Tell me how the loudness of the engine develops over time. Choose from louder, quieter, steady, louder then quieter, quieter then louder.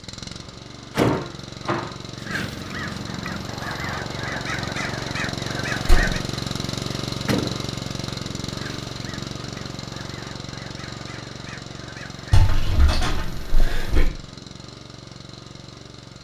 louder then quieter.